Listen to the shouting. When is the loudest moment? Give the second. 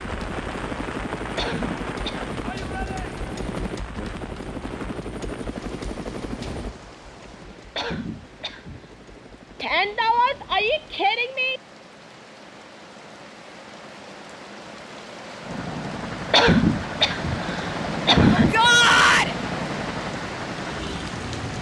19 s.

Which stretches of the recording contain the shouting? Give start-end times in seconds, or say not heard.
2.4-3.2, 9.6-11.6, 18.3-19.4.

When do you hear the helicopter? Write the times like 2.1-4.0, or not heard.
0.0-11.0, 15.4-21.5.